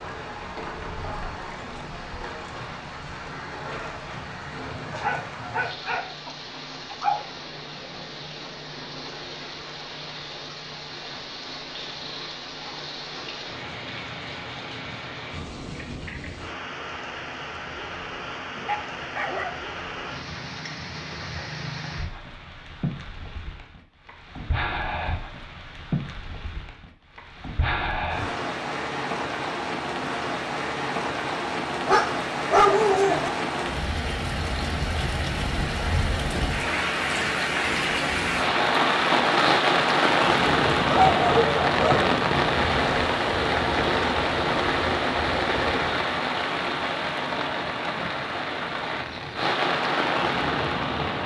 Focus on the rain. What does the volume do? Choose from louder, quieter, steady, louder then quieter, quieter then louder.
louder.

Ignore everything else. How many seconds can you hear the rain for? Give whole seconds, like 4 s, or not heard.
51 s.